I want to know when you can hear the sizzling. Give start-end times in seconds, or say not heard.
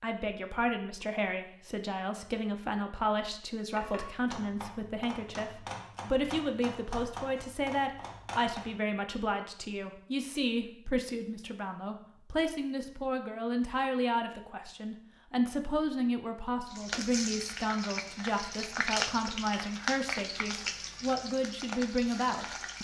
16.6-22.7.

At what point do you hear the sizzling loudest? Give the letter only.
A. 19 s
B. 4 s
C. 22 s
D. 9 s
A.